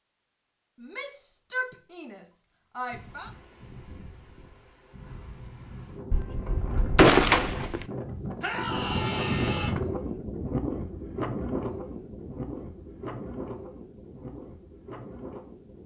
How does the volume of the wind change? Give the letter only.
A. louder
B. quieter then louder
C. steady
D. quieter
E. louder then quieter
E.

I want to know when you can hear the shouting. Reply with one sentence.
The shouting can be heard from 0.8 to 3.3 s and from 8.4 to 9.8 s.